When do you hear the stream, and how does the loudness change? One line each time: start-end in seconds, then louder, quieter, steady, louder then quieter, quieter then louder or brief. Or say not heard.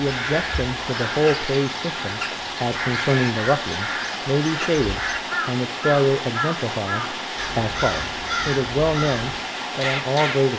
0.0-10.5 steady.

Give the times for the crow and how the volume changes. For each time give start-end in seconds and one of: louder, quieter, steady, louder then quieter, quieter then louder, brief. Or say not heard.
0.0-10.4 steady.